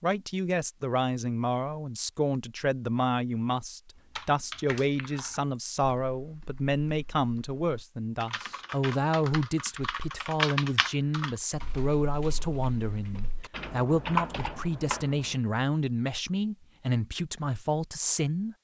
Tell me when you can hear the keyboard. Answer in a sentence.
You can hear the keyboard from 4.0 to 15.3 s.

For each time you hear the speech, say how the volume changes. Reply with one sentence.
The speech can be heard from 0.0 to 18.5 s, at a steady volume.